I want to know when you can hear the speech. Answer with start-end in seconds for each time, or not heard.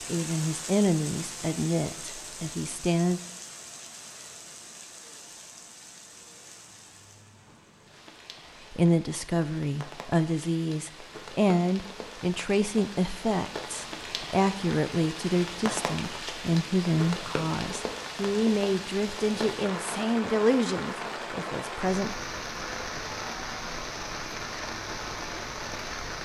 0.1-3.2, 8.7-22.1.